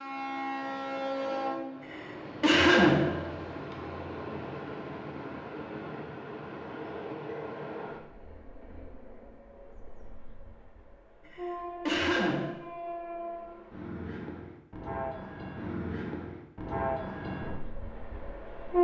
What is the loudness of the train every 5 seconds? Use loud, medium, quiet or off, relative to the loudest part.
loud, medium, medium, loud.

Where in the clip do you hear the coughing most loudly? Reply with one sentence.
The volume of the coughing peaks at 3 seconds.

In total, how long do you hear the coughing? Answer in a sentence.
You can hear the coughing for 3 seconds altogether.